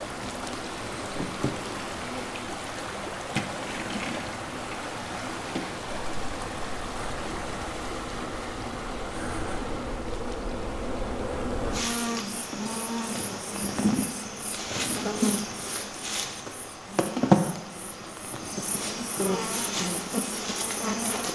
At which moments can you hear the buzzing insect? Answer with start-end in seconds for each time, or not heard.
0.0-21.3.